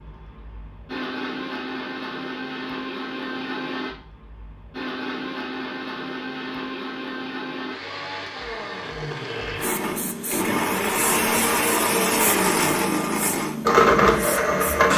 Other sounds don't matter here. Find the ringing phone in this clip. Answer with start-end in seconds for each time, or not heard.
not heard.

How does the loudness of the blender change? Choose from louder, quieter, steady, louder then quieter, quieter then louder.
louder.